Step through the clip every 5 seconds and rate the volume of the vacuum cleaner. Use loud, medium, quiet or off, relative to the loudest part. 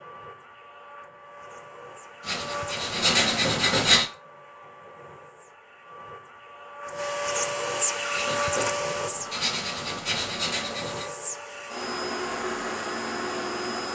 medium, loud, loud.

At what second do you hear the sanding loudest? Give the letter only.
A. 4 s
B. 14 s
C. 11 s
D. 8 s
A.